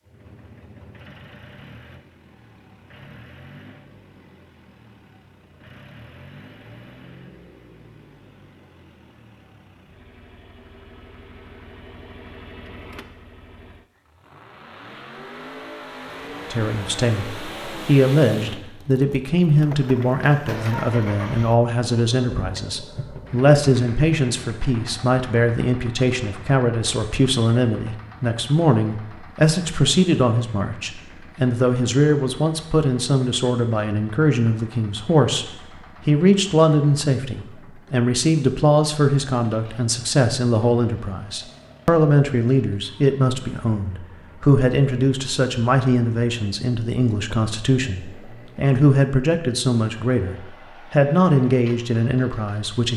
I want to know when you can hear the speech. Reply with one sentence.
The speech can be heard from 16.5 to 52.9 s.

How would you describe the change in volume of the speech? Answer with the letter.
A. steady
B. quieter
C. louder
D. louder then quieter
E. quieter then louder
A.